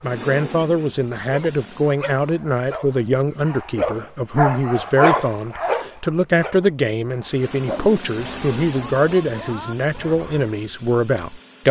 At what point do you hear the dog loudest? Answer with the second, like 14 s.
5 s.